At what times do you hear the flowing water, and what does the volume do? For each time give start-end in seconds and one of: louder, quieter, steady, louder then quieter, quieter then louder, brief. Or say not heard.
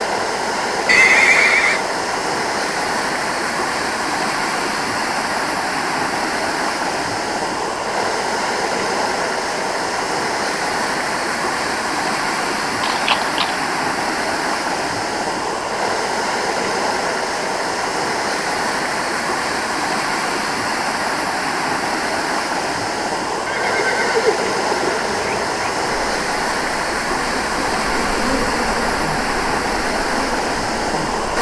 0.0-31.3 steady.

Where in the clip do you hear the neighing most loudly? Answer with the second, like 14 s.
1 s.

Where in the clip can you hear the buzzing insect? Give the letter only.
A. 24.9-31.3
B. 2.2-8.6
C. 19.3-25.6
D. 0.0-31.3
A.